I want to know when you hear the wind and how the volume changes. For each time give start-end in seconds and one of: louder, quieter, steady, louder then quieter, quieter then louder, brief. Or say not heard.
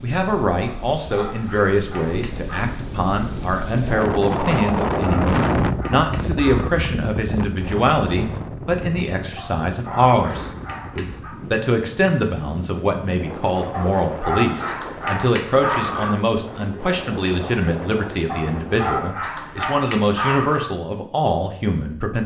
0.0-18.9 louder then quieter.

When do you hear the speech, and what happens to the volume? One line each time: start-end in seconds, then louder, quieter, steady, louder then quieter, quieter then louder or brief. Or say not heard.
0.0-22.2 steady.